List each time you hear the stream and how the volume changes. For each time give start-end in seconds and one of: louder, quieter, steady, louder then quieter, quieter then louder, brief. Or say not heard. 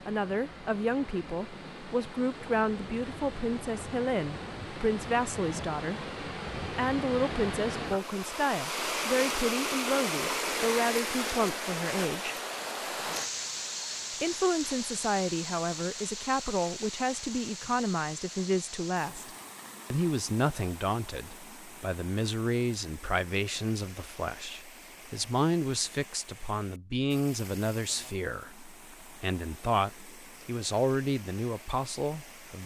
0.0-32.6 louder then quieter.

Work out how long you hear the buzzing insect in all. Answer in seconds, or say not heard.
not heard.